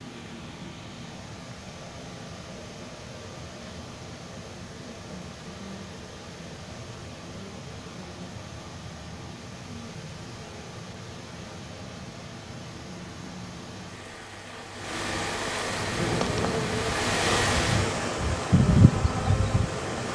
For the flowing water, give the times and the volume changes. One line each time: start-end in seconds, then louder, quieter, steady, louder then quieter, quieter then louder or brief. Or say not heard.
0.0-20.1 louder.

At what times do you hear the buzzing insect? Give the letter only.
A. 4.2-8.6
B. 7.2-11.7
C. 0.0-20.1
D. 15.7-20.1
D.